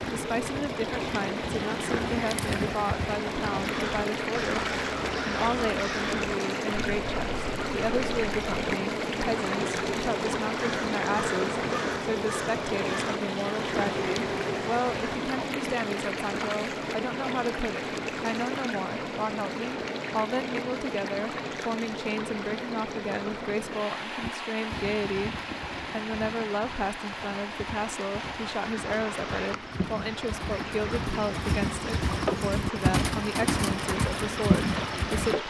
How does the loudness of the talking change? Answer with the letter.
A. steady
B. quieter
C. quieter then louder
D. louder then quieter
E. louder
A.